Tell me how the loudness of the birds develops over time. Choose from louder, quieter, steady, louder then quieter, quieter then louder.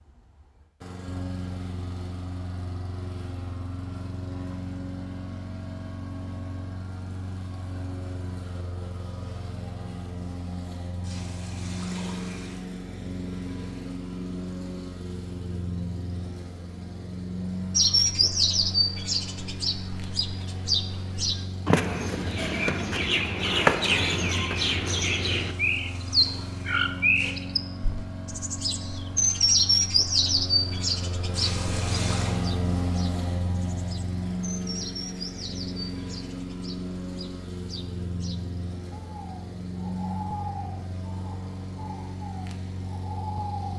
quieter.